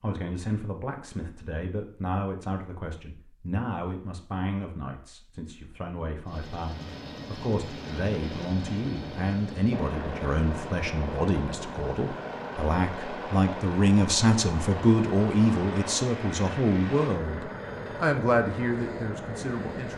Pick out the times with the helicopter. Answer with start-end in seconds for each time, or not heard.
6.2-19.9.